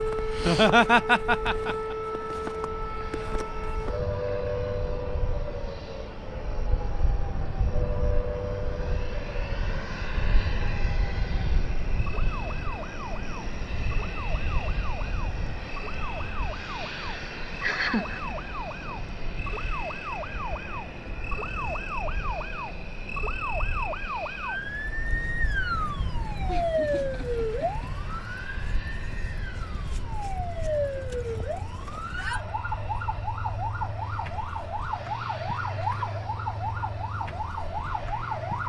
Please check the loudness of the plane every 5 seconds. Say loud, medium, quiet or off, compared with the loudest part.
medium, loud, loud, loud, medium, medium, medium, medium.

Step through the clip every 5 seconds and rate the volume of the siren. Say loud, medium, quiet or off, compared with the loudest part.
loud, medium, medium, medium, loud, loud, loud, loud.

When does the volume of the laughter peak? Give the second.
1 s.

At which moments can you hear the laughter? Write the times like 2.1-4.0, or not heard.
0.3-1.9, 17.6-18.4, 26.4-27.9.